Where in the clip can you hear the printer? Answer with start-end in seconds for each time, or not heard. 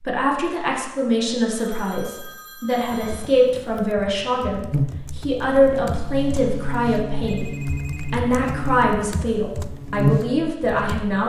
not heard.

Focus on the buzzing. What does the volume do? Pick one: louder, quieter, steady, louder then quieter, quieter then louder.
louder.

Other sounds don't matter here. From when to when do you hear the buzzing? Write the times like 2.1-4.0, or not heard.
4.7-11.2.